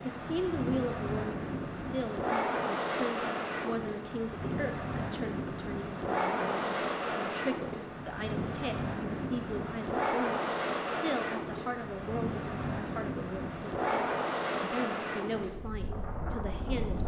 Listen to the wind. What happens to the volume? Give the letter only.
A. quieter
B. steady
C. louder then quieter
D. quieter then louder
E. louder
B.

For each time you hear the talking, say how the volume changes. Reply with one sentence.
You can hear the talking from 0.0 to 17.0 s, at a steady volume.